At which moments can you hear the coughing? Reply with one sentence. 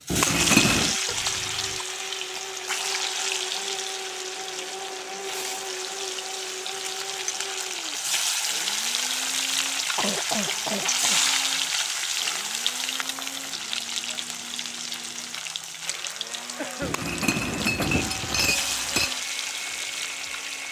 The coughing can be heard from 1.1 to 1.9 s, from 9.9 to 11.2 s and from 16.6 to 17.1 s.